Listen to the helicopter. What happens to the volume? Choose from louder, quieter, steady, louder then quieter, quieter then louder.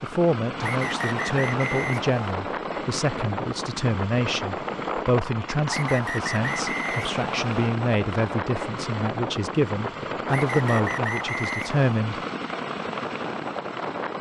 steady.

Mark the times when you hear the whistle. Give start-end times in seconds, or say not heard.
0.6-2.4, 5.7-7.5, 10.2-12.1.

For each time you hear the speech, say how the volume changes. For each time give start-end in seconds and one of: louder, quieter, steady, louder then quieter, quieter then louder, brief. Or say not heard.
0.0-12.2 steady.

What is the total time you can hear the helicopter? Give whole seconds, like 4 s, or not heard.
14 s.